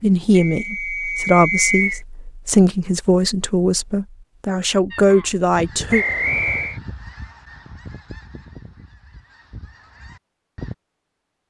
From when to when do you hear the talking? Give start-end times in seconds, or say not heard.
0.0-6.0.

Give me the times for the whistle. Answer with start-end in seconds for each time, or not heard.
0.3-2.0, 5.9-6.8.